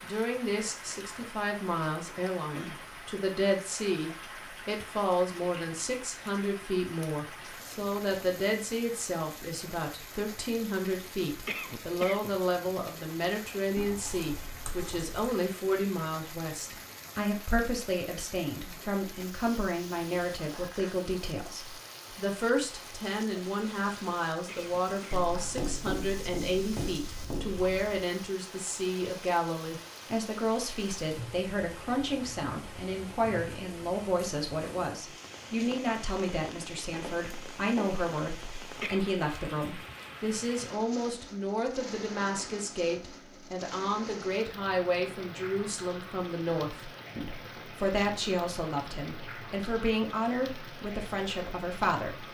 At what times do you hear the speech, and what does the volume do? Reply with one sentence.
You can hear the speech from 0.0 to 52.2 s, at a steady volume.